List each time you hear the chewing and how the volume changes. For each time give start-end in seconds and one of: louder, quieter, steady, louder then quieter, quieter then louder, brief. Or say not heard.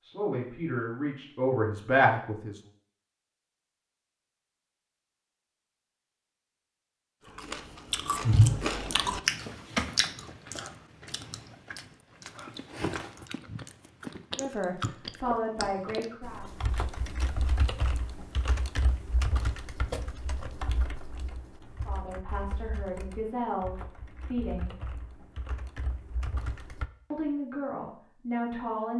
7.2-16.1 quieter then louder.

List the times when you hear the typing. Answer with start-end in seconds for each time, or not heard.
16.2-26.9.